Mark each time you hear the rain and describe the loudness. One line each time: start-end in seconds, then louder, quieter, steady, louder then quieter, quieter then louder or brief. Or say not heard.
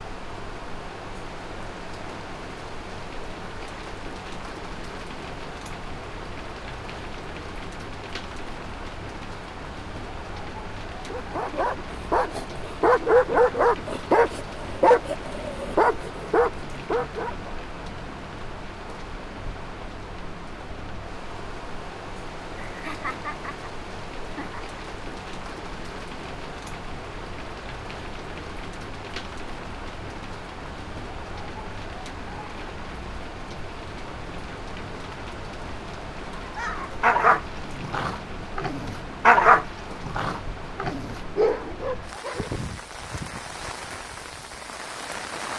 0.0-45.5 steady.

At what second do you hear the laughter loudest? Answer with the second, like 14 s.
23 s.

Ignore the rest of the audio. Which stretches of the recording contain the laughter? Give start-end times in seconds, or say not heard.
22.6-24.6.